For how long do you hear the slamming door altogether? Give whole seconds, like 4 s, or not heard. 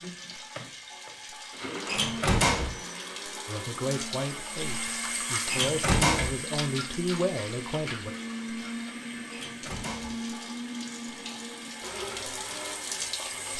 3 s.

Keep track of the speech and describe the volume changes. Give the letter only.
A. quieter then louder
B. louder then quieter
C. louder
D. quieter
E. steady
A.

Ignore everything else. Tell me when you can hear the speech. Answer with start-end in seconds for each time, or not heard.
3.5-8.2.